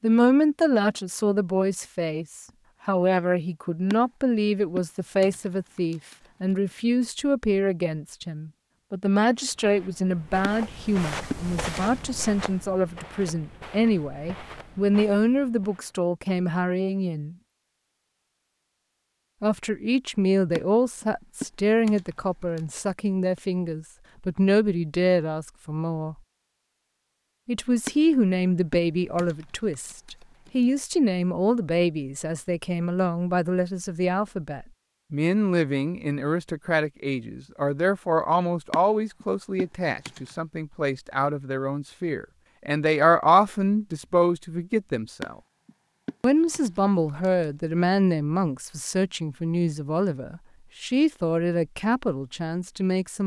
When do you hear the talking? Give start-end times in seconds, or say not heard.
0.0-17.4, 19.4-26.1, 27.4-45.4, 46.2-53.2.